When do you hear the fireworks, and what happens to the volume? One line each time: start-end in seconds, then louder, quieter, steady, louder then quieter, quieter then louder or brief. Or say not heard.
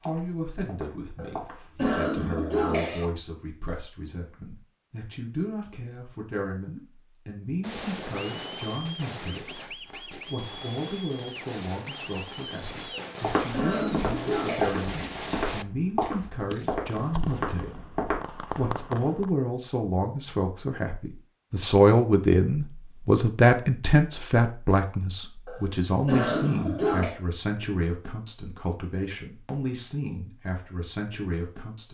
7.6-19.3 steady.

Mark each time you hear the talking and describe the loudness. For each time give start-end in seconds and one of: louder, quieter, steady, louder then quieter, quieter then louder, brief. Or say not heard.
0.0-31.9 louder then quieter.